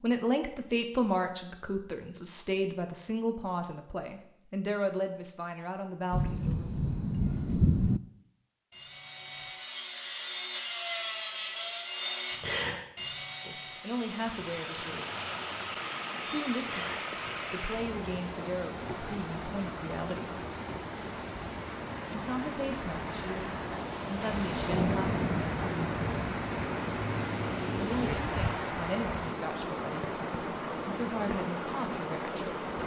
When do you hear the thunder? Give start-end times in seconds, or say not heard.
6.1-8.0, 24.2-28.1.